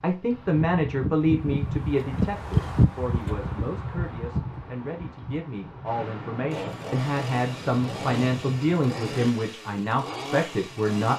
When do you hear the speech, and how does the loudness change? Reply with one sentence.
The speech can be heard from 0.0 to 11.1 s, getting quieter then louder.